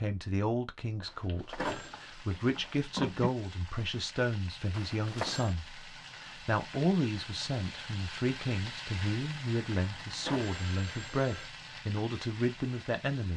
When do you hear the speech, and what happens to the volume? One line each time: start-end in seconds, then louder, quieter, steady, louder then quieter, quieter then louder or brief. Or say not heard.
0.0-13.3 steady.